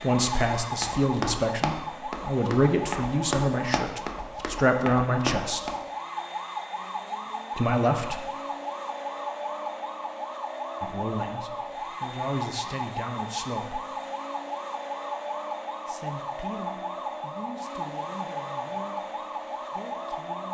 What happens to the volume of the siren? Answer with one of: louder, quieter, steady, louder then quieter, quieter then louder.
steady.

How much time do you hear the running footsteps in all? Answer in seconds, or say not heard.
6 s.